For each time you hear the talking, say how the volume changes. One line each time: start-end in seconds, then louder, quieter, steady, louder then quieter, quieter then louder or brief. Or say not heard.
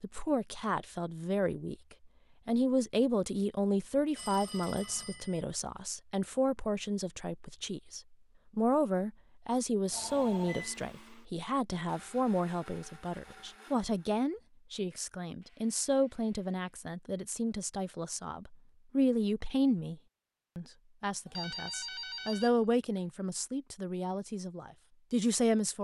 0.0-25.8 steady.